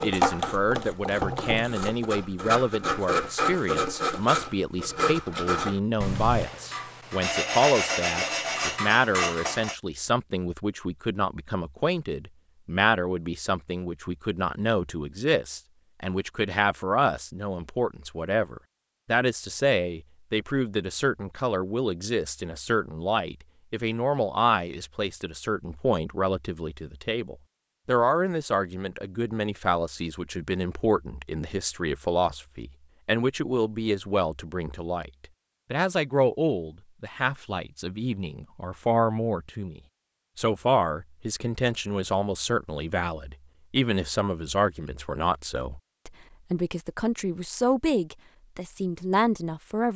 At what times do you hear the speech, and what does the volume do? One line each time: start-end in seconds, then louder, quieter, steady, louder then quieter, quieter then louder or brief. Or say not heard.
0.0-49.9 steady.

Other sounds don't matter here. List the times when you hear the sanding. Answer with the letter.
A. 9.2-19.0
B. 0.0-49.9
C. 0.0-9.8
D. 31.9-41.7
C.